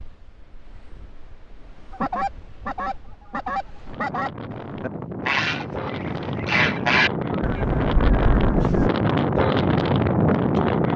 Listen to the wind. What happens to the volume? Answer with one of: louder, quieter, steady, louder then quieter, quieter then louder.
louder.